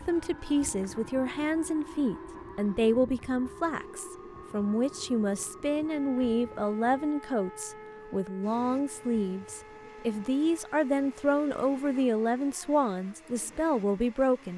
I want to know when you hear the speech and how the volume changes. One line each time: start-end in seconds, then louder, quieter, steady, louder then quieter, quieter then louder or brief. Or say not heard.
0.1-14.5 steady.